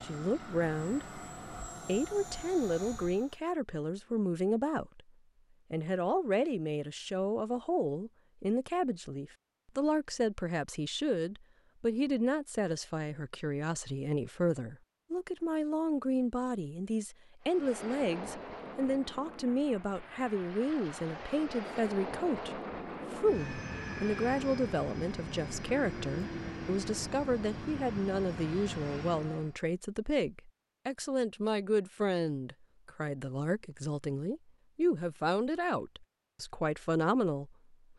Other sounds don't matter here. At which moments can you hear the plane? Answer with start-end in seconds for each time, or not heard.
0.0-3.4, 17.4-29.6.